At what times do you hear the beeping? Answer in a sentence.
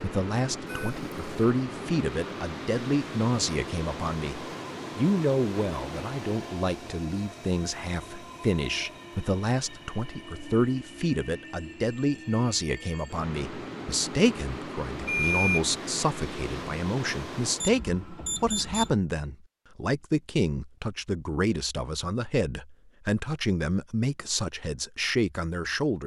You can hear the beeping from 0.7 to 1.4 s, from 15.1 to 15.8 s and from 17.6 to 18.9 s.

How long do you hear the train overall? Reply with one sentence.
You can hear the train for 18 seconds altogether.